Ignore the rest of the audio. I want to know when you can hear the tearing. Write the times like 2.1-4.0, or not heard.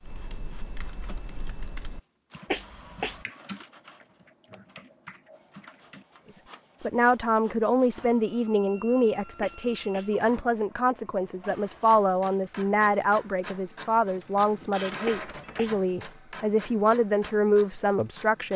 not heard.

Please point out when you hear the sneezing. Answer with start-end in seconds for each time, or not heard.
2.5-3.2, 9.4-10.2, 15.1-15.8.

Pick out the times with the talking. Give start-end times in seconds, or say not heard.
6.8-18.5.